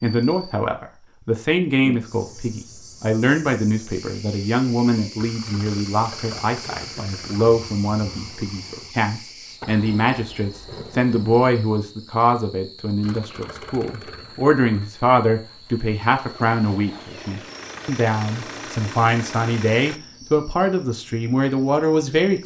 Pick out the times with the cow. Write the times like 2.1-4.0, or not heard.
not heard.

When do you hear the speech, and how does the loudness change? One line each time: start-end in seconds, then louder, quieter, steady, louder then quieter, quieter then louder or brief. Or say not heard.
0.0-22.4 steady.